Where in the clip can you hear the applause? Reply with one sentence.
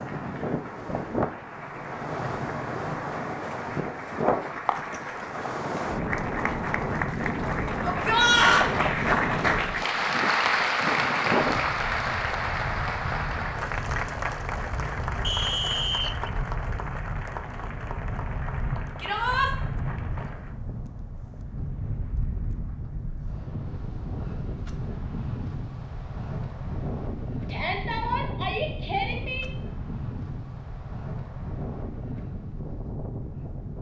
You can hear the applause from 0.0 to 20.6 s.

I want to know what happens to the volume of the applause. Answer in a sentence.
The volume of the applause goes up, then down.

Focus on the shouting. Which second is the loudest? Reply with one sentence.
The volume of the shouting peaks at 8 seconds.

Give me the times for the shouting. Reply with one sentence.
You can hear the shouting from 7.8 to 8.7 s, from 19.0 to 19.5 s and from 27.4 to 29.4 s.